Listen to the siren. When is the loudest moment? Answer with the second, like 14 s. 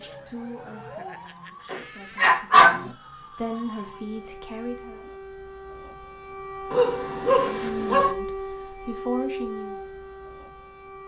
8 s.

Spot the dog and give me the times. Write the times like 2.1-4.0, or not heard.
1.7-2.9, 6.7-8.2.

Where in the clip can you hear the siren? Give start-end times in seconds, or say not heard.
0.0-11.0.